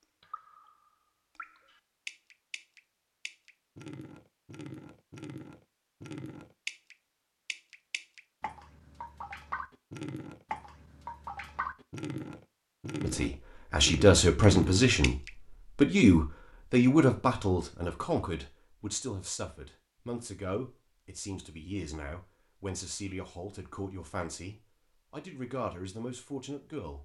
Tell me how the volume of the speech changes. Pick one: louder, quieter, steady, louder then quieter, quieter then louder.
quieter.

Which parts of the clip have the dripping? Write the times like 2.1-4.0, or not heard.
0.2-15.8.